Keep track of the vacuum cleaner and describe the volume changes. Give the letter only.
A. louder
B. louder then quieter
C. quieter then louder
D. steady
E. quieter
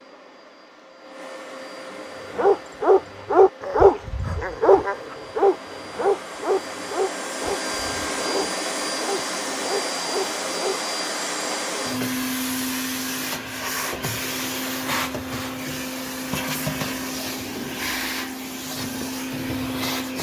A.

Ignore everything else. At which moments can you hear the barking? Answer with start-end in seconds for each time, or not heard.
2.3-10.8.